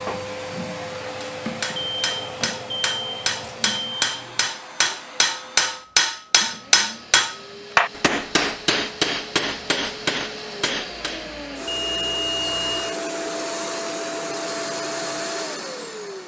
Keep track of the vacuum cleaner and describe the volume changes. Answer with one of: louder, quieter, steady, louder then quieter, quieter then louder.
quieter then louder.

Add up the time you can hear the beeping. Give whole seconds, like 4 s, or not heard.
4 s.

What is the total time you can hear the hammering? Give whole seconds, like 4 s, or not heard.
10 s.